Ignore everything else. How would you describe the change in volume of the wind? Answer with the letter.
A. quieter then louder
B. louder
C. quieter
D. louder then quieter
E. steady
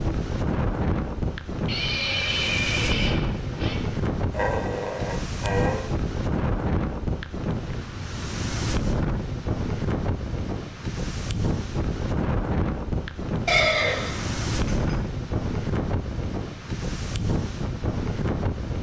E.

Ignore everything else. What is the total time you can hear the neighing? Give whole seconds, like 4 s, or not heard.
4 s.